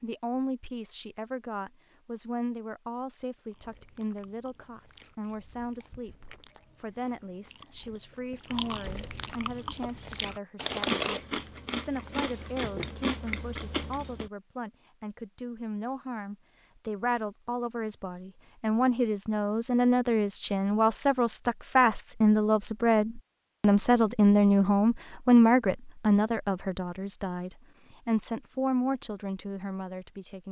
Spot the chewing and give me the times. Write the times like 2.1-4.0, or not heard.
3.5-14.3.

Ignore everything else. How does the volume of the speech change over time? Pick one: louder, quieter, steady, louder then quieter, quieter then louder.
louder.